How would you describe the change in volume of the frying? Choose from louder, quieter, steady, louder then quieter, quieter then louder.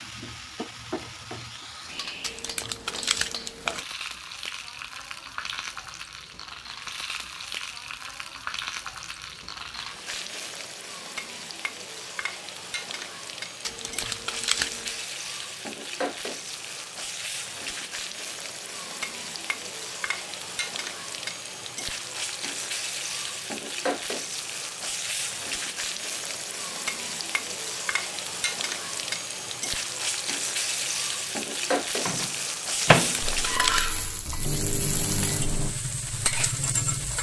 louder.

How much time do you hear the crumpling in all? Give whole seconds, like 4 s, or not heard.
4 s.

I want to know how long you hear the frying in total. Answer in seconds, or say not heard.
37 s.